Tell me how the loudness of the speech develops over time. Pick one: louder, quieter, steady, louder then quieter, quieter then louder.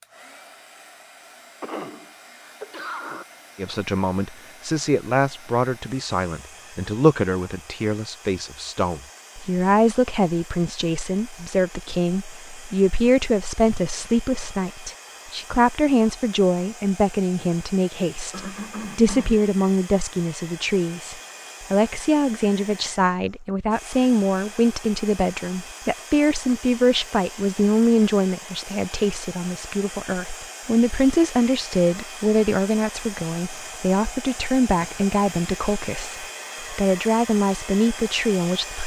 steady.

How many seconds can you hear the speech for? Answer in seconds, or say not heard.
35 s.